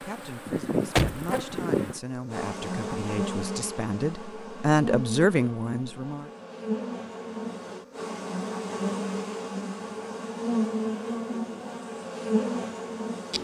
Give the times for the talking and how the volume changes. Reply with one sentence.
You can hear the talking from 0.0 to 6.3 s, getting louder.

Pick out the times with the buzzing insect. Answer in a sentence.
The buzzing insect can be heard from 0.0 to 13.3 s.